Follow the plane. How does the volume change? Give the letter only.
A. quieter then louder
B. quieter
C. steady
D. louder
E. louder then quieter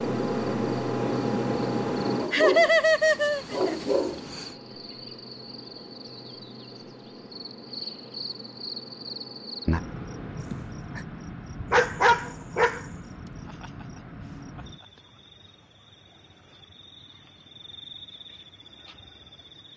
B.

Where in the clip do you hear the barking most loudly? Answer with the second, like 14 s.
12 s.